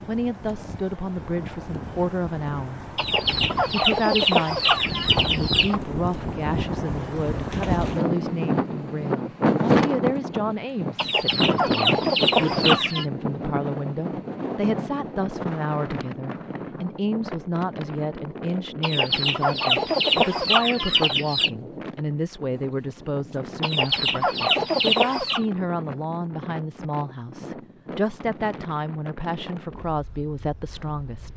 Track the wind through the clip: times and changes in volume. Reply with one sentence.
The wind can be heard from 0.0 to 31.3 s, getting louder then quieter.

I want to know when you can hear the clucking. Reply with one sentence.
You can hear the clucking from 3.0 to 5.8 s, from 10.9 to 13.1 s, from 18.8 to 21.5 s and from 23.6 to 25.4 s.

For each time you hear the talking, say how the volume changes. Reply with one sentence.
You can hear the talking briefly from 0.1 to 2.8 s; and from 3.7 to 31.3 s, at a steady volume.